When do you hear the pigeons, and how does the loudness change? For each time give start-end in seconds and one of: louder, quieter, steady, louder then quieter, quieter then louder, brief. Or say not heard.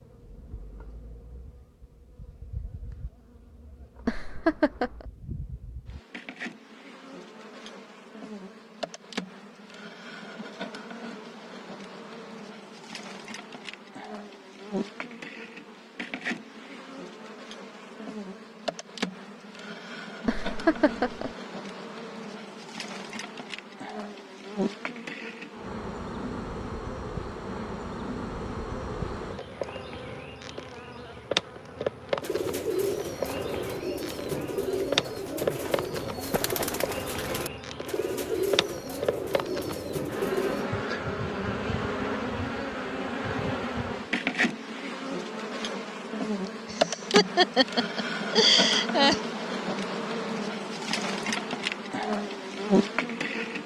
32.2-40.7 steady.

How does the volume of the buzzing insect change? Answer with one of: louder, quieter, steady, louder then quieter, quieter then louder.
louder.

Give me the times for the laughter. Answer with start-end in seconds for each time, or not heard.
4.0-5.0, 20.2-21.3, 46.6-49.2.